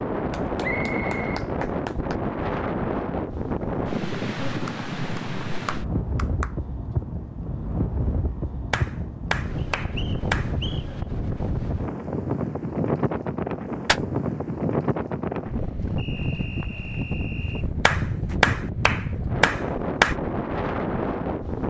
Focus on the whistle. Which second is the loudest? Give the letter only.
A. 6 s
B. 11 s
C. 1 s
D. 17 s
C.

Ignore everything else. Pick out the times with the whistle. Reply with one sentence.
You can hear the whistle from 0.6 to 1.4 s, from 9.6 to 10.8 s and from 15.9 to 17.6 s.